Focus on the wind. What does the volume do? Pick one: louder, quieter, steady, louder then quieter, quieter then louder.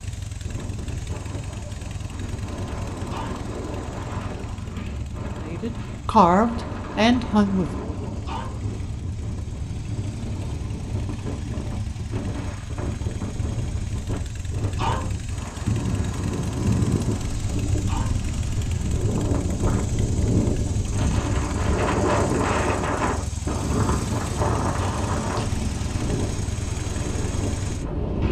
louder.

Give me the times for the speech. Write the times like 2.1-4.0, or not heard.
5.4-7.9.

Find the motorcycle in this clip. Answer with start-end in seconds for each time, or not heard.
0.0-28.2.